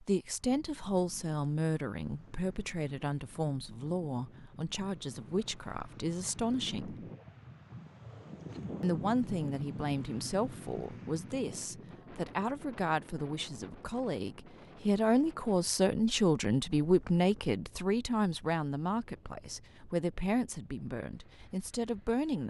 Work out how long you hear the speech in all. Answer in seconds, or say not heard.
21 s.